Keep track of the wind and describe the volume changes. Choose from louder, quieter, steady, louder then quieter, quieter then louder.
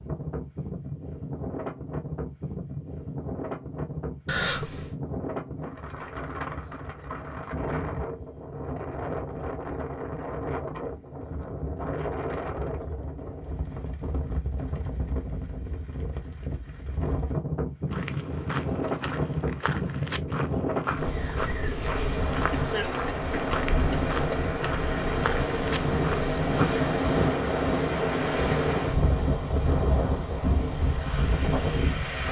louder.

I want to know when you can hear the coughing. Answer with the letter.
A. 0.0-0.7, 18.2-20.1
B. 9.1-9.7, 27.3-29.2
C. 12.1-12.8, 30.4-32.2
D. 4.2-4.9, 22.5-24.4
D.